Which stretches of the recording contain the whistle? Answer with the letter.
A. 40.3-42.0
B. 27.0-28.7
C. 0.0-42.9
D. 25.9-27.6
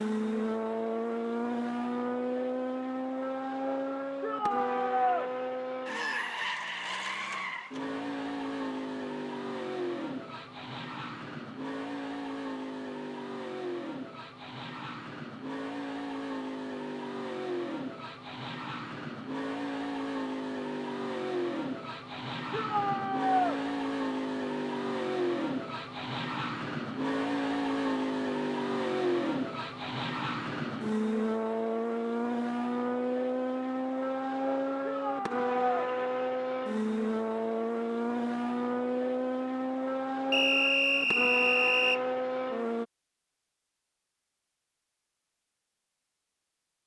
A.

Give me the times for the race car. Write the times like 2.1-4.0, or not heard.
0.0-42.9.